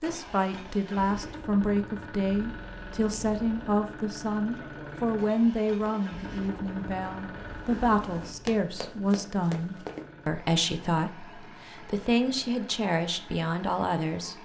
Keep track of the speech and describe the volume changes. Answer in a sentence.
The loudness of the speech stays about the same.